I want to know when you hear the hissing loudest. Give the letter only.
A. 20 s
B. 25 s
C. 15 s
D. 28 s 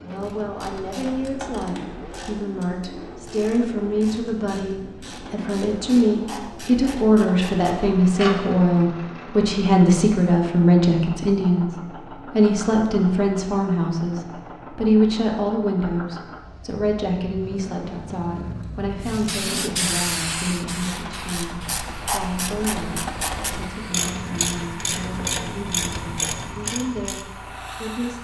A.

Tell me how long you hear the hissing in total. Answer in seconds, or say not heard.
9 s.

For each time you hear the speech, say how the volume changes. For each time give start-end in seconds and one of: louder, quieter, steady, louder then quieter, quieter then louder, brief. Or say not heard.
0.0-28.1 louder then quieter.